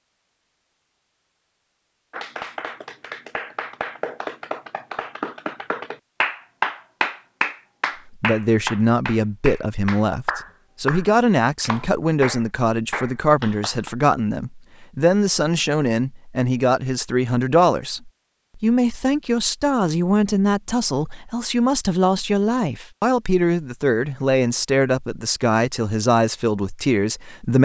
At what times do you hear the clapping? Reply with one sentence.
The clapping can be heard from 2.1 to 13.9 s.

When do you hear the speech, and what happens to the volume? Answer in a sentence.
The speech can be heard from 8.2 to 27.6 s, at a steady volume.